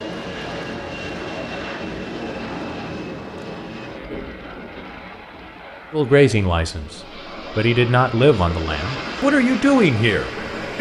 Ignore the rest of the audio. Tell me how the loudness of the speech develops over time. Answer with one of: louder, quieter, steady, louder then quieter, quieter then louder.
louder.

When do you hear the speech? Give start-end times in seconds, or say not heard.
5.9-10.7.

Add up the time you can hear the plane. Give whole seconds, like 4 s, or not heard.
11 s.